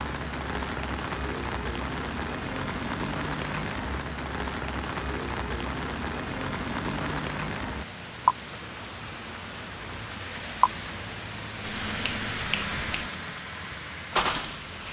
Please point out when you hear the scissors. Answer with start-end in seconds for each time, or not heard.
11.7-13.1.